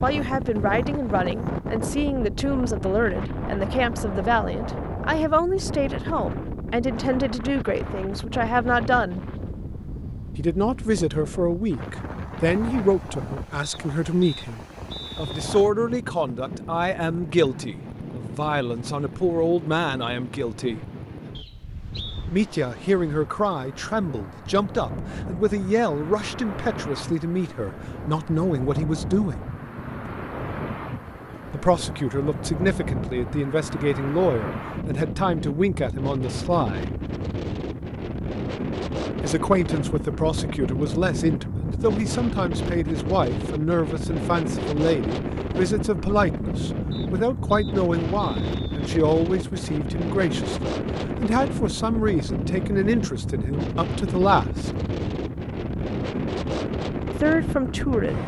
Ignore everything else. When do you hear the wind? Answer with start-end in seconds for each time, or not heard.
0.0-58.2.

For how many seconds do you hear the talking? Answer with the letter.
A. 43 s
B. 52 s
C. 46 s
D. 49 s
D.